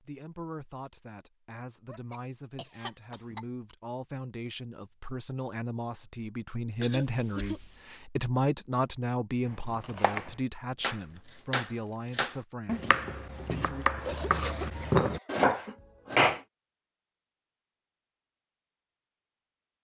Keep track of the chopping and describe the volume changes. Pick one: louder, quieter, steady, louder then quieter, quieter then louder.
louder.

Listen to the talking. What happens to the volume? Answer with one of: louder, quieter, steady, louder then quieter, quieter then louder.
louder then quieter.